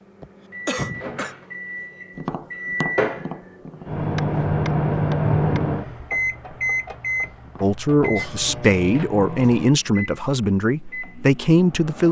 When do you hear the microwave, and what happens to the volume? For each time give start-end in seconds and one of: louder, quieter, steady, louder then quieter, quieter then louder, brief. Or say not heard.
0.0-12.0 louder then quieter.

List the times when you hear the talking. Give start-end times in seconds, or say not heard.
7.6-12.0.